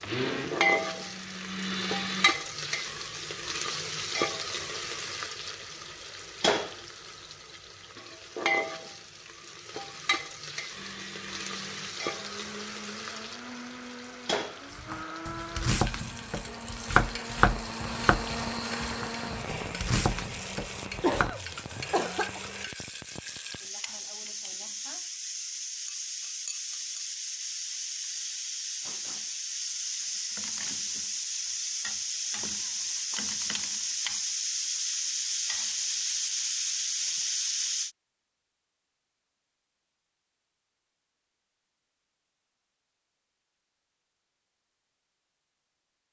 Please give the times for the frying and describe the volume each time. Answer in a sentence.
The frying can be heard from 0.0 to 37.9 s, getting quieter then louder.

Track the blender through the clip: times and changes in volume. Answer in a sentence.
You can hear the blender briefly from 0.0 to 2.3 s; and from 10.8 to 22.7 s, getting louder then quieter.